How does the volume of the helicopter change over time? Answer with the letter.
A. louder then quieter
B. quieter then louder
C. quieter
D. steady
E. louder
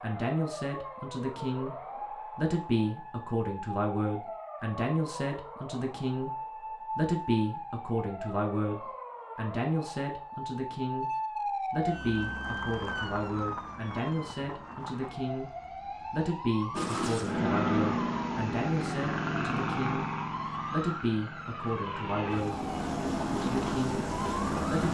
B.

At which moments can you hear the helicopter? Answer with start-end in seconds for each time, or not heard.
16.7-24.8.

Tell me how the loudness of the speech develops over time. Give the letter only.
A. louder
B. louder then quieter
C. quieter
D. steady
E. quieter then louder
D.